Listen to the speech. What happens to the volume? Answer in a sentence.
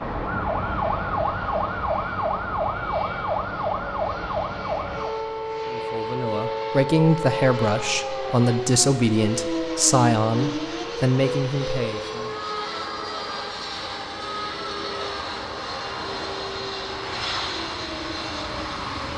The volume of the speech stays about the same.